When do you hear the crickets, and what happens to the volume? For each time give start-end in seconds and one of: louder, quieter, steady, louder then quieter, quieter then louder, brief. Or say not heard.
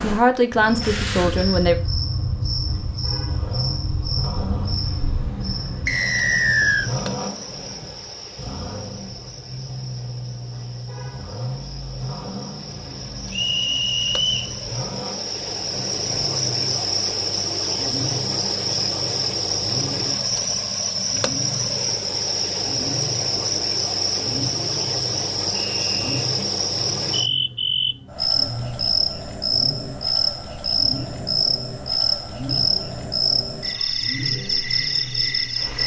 0.0-35.8 quieter then louder.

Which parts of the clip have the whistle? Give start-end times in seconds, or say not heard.
5.8-6.9, 13.3-14.6, 25.5-26.3.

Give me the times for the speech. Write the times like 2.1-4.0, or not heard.
0.0-1.8.